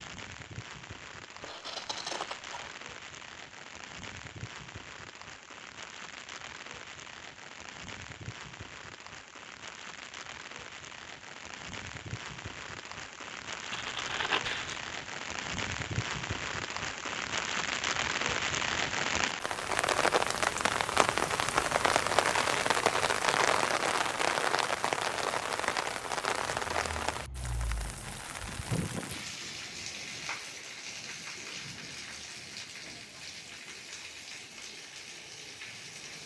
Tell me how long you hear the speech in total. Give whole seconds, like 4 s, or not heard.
not heard.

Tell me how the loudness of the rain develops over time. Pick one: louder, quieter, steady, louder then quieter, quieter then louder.
louder then quieter.